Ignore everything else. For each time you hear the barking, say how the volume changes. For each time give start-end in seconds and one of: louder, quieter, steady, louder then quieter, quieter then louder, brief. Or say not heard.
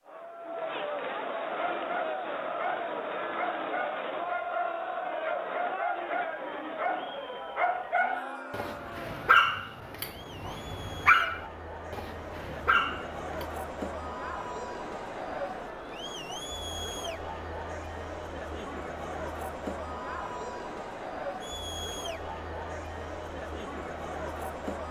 1.4-13.4 louder.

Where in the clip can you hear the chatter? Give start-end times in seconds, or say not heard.
0.0-24.8.